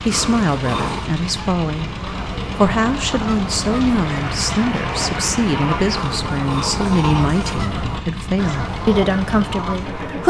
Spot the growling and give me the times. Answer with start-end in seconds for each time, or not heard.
0.1-1.1, 5.9-7.7.